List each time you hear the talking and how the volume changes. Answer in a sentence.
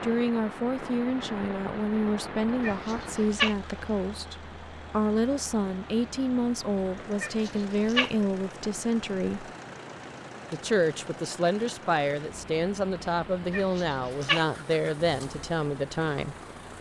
The talking can be heard from 0.0 to 9.5 s, at a steady volume; and from 10.5 to 16.4 s, at a steady volume.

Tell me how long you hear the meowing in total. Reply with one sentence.
The meowing can be heard for 3 seconds in total.